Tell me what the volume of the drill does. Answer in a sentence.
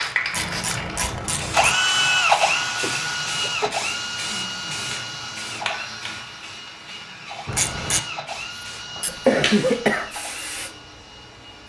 The loudness of the drill goes down.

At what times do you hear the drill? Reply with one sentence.
You can hear the drill from 0.0 to 11.6 s.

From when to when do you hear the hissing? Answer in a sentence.
The hissing can be heard from 0.0 to 11.6 s.